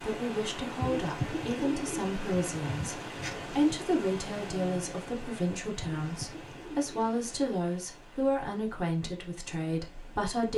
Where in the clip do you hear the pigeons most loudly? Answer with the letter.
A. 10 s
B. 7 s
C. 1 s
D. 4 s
C.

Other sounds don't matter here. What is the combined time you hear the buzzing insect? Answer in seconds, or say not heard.
not heard.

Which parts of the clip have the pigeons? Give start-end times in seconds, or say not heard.
0.8-3.6, 5.8-7.4.